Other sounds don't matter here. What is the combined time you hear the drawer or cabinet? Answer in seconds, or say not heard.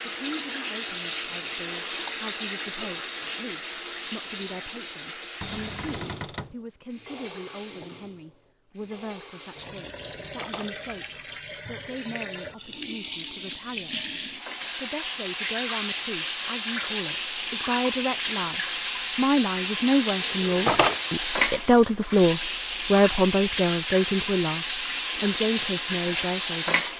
3 s.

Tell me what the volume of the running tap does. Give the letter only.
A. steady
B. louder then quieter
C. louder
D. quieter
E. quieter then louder
E.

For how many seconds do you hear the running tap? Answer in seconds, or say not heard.
27 s.